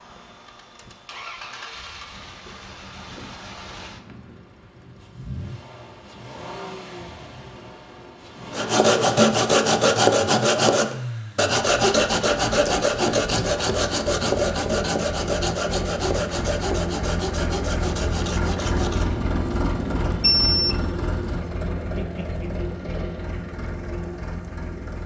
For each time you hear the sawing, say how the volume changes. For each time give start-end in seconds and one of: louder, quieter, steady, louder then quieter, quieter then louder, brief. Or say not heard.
8.5-19.2 quieter.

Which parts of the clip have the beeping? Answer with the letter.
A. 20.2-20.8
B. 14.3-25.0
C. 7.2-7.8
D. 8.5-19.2
A.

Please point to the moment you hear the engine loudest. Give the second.
19 s.